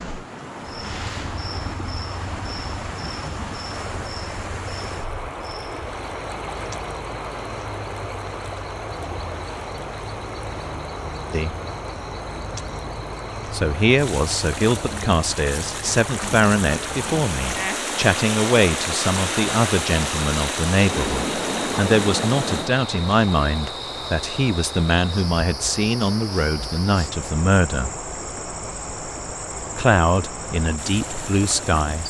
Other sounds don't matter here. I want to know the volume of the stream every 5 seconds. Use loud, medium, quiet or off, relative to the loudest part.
medium, medium, medium, loud, loud, medium, medium.